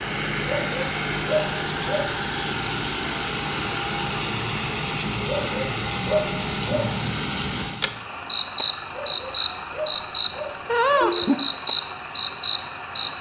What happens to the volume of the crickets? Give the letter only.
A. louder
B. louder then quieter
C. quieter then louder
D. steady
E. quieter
A.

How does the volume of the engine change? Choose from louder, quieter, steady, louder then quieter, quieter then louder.
quieter.